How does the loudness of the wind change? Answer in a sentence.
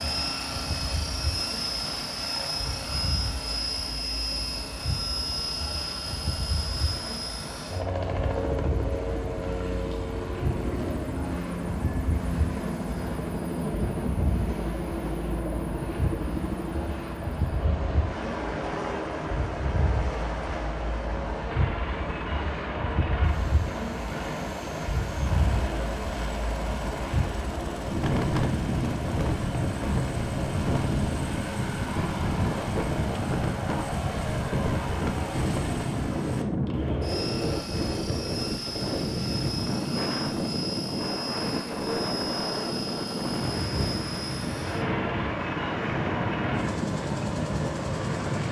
The volume of the wind goes up.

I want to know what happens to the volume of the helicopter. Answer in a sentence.
The volume of the helicopter stays about the same.